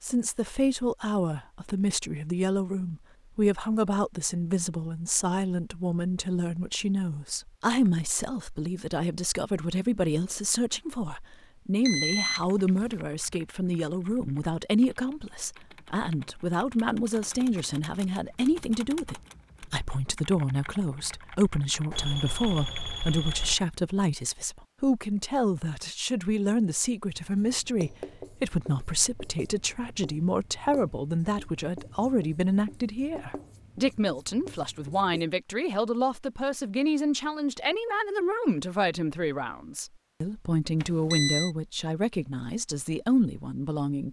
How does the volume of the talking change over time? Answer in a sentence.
The loudness of the talking stays about the same.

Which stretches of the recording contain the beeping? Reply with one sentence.
The beeping can be heard from 11.8 to 13.0 s, from 21.9 to 23.6 s and from 40.8 to 41.5 s.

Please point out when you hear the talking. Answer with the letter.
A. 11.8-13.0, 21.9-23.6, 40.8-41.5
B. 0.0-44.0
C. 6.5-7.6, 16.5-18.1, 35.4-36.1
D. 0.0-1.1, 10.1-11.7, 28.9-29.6
B.